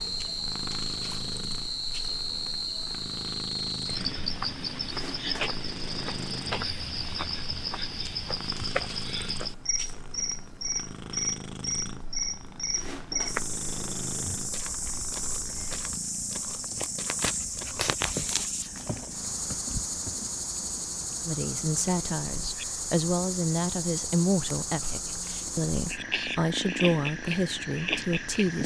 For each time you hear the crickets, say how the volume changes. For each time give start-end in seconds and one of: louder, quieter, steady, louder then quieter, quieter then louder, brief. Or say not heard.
0.0-28.6 steady.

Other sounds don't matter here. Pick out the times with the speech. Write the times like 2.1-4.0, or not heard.
21.2-28.6.